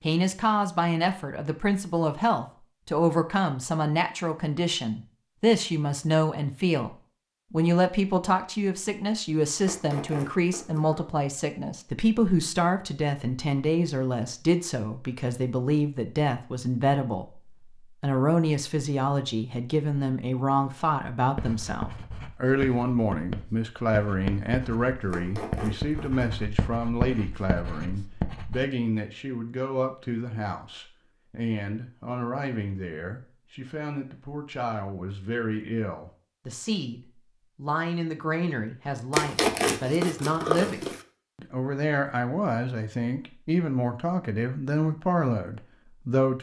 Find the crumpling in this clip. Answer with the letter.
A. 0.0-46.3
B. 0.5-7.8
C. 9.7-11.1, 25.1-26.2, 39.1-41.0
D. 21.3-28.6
C.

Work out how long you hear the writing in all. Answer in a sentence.
You can hear the writing for 7 seconds altogether.